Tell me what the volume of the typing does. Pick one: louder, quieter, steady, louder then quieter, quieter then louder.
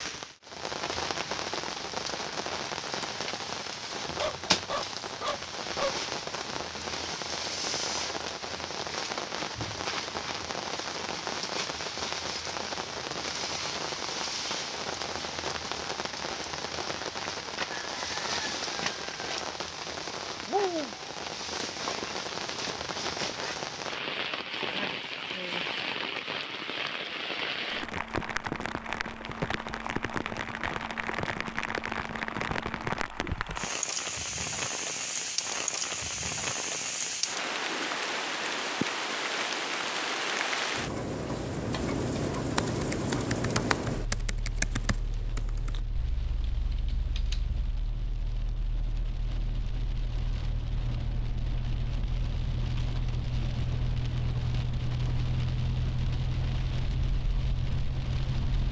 quieter.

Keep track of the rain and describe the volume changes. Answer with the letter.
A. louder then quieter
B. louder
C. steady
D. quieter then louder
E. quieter
C.